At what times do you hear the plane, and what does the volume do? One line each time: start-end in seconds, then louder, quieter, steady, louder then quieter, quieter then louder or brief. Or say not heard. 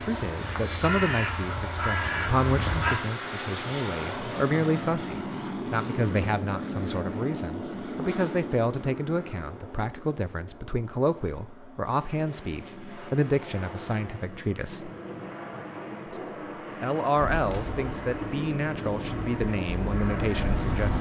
0.0-20.9 quieter then louder.